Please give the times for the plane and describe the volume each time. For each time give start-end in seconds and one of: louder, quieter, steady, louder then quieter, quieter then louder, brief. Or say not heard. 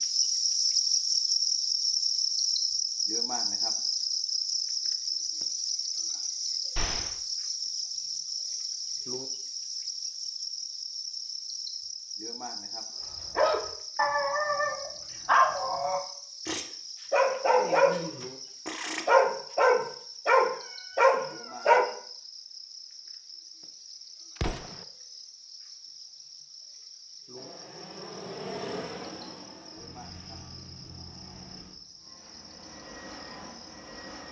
27.4-34.2 quieter then louder.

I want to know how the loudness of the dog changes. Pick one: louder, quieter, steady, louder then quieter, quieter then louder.
louder.